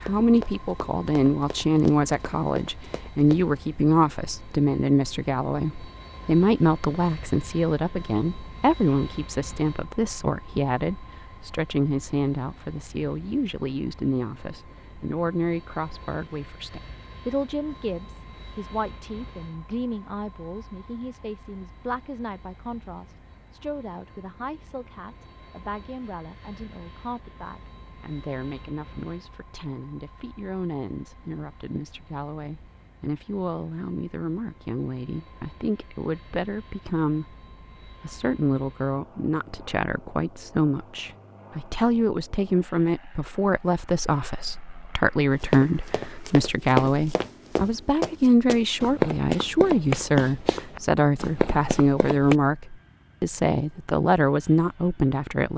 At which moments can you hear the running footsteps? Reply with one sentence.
The running footsteps can be heard from 0.0 to 3.6 s and from 45.4 to 52.4 s.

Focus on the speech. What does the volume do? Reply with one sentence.
The volume of the speech goes down, then up.